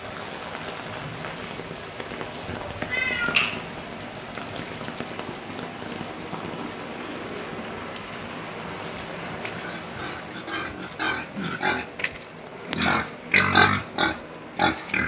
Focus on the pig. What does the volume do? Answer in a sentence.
The loudness of the pig goes up.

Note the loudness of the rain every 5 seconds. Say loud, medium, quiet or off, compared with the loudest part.
loud, loud, medium.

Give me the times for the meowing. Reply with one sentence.
The meowing can be heard from 2.5 to 3.5 s.